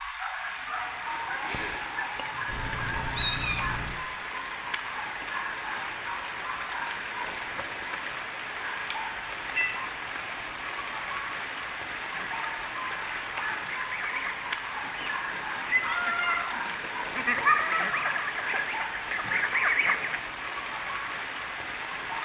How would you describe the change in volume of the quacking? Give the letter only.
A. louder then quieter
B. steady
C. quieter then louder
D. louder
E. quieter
D.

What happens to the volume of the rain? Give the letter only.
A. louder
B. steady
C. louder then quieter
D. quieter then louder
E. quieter
B.